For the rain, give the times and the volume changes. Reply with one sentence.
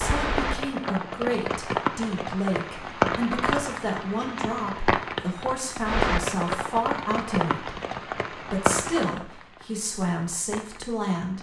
You can hear the rain from 0.0 to 11.3 s, getting quieter.